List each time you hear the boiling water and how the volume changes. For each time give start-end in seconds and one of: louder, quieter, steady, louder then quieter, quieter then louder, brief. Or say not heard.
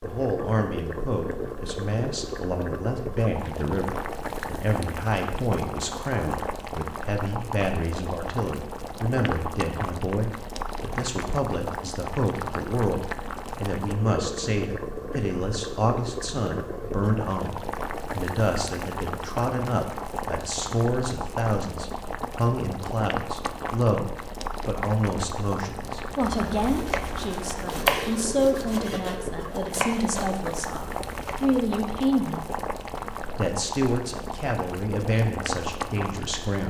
0.0-36.6 steady.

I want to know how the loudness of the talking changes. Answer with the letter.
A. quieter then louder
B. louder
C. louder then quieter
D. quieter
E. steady
E.